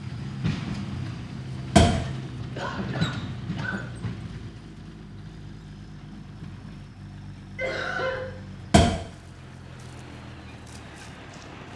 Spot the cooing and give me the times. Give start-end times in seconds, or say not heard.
not heard.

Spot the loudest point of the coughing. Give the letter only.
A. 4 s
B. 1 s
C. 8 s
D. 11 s
C.